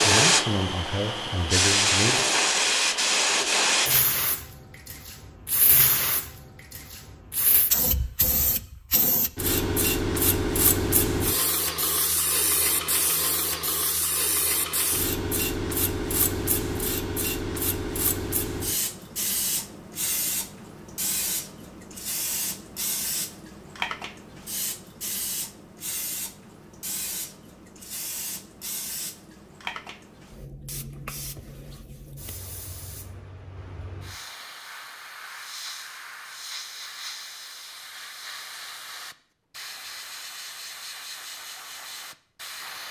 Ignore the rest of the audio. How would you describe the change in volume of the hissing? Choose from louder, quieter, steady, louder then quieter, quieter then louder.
quieter.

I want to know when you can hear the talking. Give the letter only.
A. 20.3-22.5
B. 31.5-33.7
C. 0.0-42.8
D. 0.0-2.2
D.